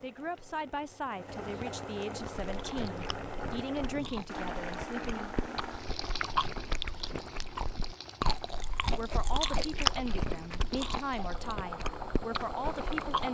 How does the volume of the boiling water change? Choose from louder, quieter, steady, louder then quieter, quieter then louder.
quieter then louder.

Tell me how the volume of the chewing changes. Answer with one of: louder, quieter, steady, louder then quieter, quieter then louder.
louder then quieter.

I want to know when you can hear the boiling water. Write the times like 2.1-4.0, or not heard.
0.0-13.3.